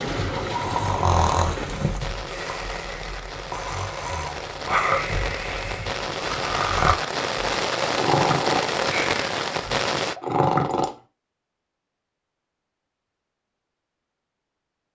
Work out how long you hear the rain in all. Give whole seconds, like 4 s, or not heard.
10 s.